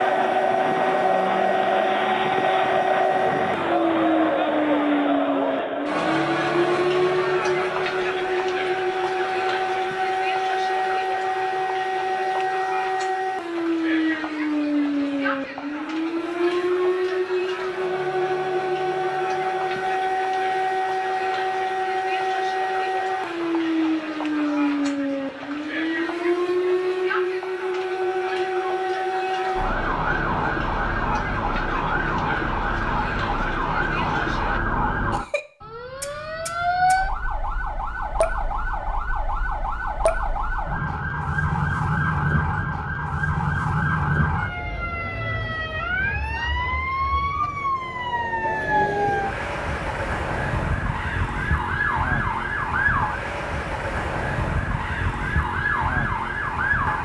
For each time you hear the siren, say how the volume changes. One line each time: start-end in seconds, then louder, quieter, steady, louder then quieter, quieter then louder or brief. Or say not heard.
0.0-57.0 steady.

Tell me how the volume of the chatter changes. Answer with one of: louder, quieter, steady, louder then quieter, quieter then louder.
quieter.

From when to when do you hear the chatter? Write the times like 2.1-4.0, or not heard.
0.0-34.6.